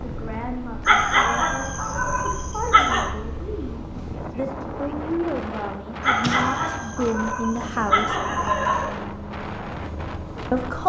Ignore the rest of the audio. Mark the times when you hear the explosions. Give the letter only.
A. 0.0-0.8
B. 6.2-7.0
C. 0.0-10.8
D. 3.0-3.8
B.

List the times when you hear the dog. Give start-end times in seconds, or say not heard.
0.8-3.1, 6.0-8.9.